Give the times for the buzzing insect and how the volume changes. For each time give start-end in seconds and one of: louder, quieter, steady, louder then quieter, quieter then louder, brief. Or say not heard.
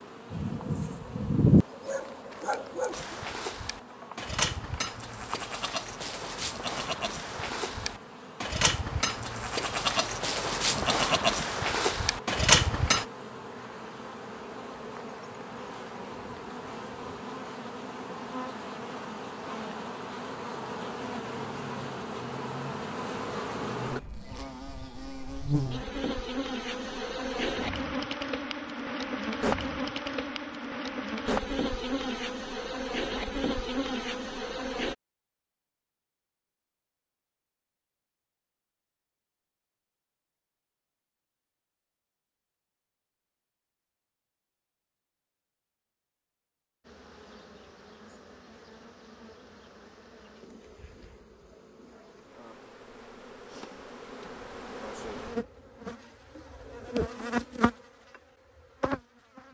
0.0-35.0 louder
46.8-59.4 louder.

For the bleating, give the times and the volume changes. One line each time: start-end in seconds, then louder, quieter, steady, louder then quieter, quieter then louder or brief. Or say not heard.
2.9-13.1 louder.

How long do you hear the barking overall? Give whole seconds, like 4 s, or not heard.
3 s.